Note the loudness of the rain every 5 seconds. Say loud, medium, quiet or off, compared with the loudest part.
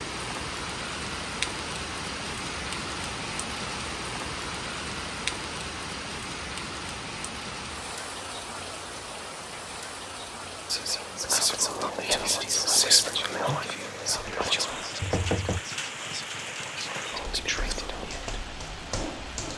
loud, loud, medium, loud.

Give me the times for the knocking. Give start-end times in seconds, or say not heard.
15.0-15.6.